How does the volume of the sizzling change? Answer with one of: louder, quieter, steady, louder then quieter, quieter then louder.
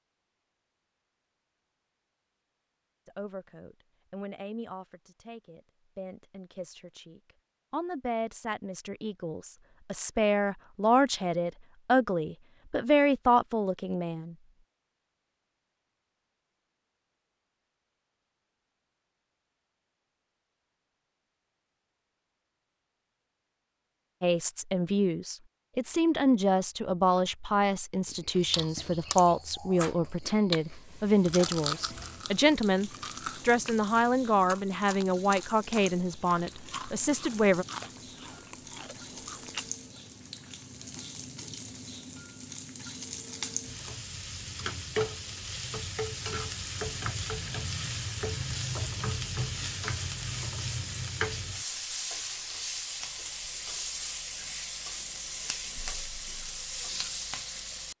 louder.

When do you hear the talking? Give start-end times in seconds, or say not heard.
3.0-14.3, 24.2-37.6.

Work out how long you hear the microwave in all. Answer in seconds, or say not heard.
not heard.